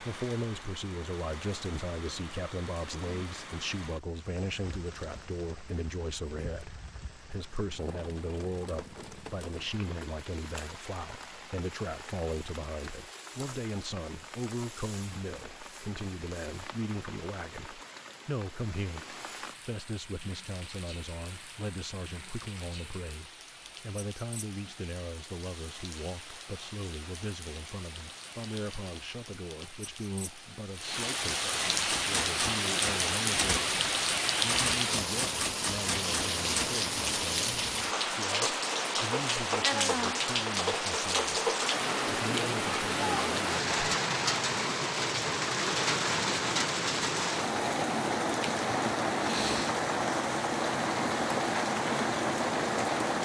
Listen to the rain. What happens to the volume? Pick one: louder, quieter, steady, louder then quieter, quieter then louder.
louder.